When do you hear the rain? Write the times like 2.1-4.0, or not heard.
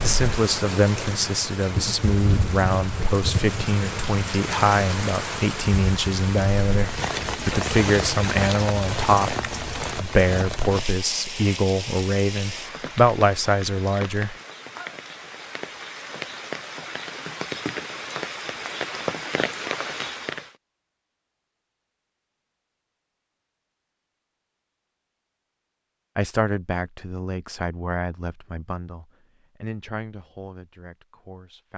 0.0-20.5.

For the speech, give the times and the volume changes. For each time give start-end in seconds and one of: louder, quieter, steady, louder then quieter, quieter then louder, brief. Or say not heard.
0.0-14.3 steady
26.1-31.7 quieter.